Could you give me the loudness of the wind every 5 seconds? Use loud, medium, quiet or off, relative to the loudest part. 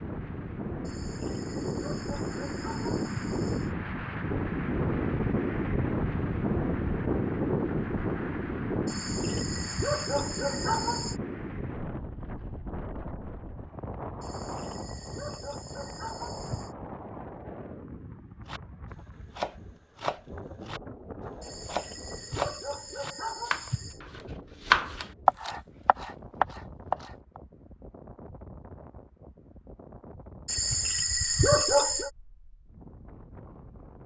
loud, loud, medium, quiet, quiet, quiet, quiet.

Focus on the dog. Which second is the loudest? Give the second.
32 s.